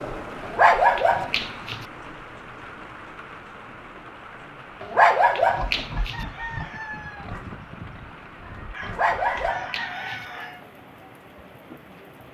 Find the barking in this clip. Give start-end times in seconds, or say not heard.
0.4-1.9, 4.8-6.2, 8.8-10.2.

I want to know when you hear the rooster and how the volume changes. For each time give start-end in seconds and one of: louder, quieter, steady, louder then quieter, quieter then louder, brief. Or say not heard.
6.0-10.7 quieter then louder.